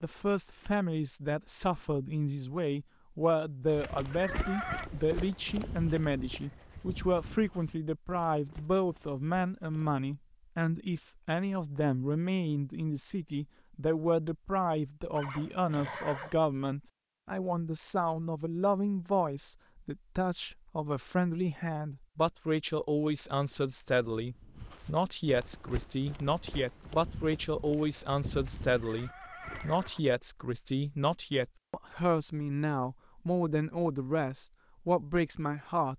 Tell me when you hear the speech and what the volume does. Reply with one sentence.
You can hear the speech from 0.0 to 35.9 s, at a steady volume.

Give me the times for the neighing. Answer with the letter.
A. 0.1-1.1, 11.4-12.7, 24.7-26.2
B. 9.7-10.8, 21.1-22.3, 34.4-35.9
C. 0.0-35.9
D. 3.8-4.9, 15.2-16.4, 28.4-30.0
D.